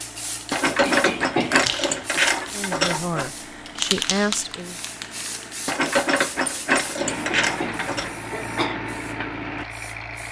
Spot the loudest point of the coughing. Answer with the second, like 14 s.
1 s.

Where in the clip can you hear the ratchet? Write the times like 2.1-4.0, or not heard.
0.5-3.3, 5.7-8.1.